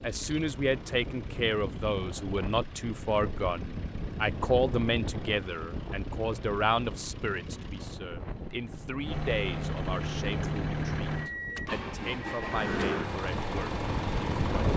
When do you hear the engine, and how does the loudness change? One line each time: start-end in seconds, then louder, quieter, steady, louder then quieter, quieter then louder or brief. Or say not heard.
0.0-14.7 louder.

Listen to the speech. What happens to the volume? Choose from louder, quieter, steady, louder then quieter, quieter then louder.
quieter.